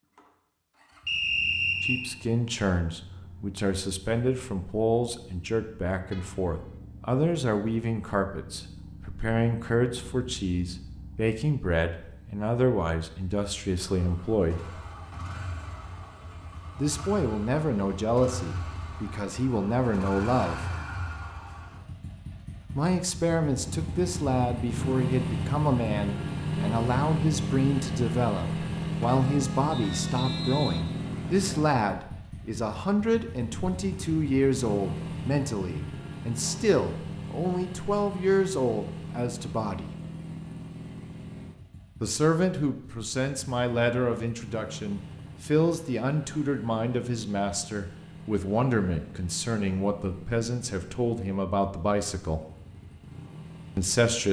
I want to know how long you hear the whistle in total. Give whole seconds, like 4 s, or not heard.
3 s.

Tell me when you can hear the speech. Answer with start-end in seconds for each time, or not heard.
1.8-14.8, 16.8-20.6, 22.7-39.9, 42.0-52.4, 53.8-54.2.